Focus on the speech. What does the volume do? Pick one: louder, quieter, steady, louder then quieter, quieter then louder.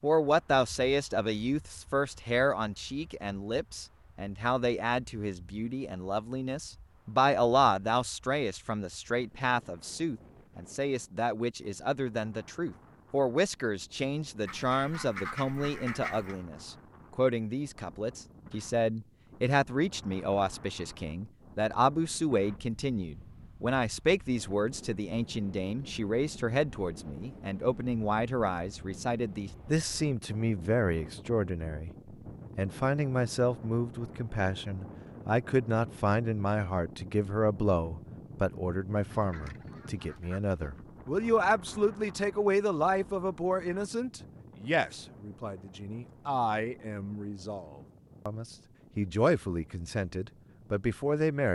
steady.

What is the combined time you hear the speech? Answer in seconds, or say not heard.
51 s.